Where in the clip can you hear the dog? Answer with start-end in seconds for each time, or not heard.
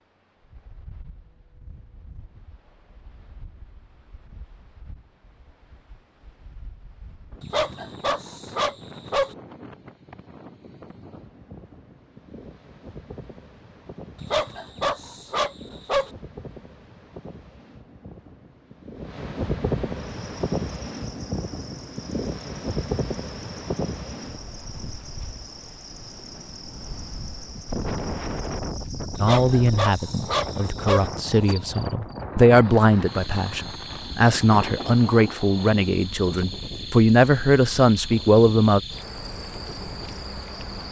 7.4-9.3, 14.2-16.1, 29.1-31.1.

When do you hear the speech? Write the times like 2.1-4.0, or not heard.
29.2-38.8.